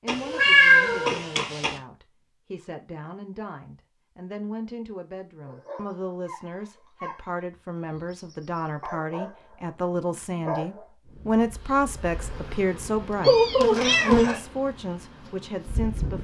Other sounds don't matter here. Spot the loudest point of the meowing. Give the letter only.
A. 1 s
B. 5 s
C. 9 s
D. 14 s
A.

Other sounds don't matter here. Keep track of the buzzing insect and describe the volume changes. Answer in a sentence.
The loudness of the buzzing insect goes up, then down.